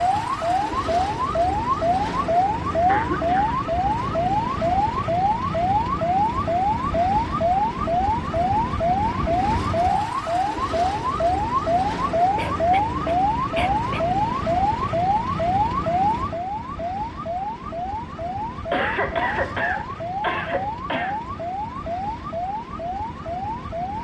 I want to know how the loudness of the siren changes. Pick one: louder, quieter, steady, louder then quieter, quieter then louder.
quieter.